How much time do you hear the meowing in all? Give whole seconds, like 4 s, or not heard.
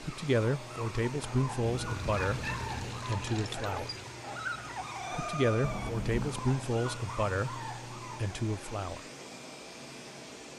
2 s.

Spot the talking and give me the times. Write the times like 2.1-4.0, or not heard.
0.0-3.9, 5.1-9.0.